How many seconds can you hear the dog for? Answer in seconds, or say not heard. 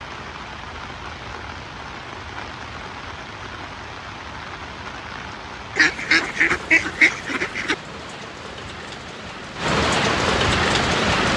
not heard.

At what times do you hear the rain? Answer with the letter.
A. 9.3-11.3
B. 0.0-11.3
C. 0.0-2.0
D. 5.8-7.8
B.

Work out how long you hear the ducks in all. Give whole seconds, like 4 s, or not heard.
2 s.